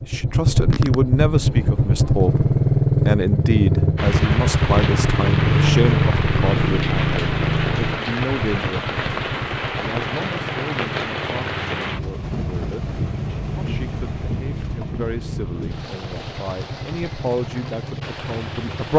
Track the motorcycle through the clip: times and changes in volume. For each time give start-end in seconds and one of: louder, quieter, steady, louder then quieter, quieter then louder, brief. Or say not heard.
0.0-18.9 quieter.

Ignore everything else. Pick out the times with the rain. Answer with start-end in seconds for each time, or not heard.
4.0-18.9.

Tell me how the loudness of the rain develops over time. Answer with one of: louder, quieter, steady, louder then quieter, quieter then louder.
quieter.